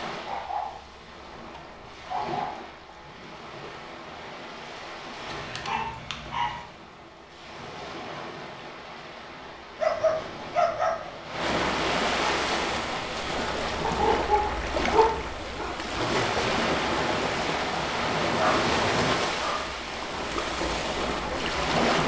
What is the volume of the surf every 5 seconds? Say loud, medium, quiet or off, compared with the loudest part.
quiet, quiet, loud, loud, loud.